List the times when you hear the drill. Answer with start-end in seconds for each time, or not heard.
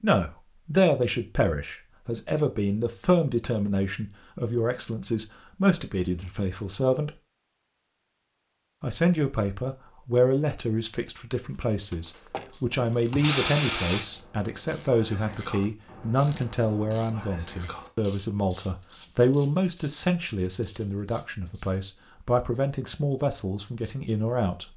11.4-14.1.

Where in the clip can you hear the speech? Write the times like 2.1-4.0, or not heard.
0.0-7.1, 8.8-24.7.